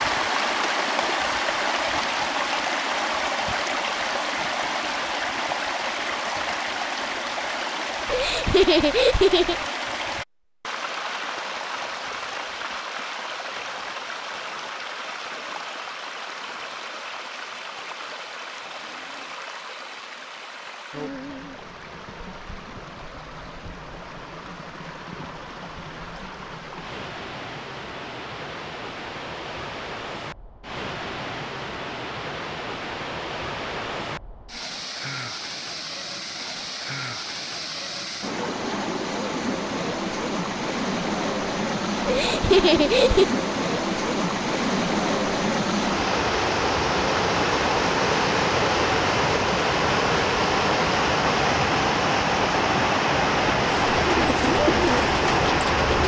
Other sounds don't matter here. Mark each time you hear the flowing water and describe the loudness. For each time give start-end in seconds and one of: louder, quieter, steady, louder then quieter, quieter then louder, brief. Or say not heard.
0.0-56.0 quieter then louder.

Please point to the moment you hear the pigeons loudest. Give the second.
55 s.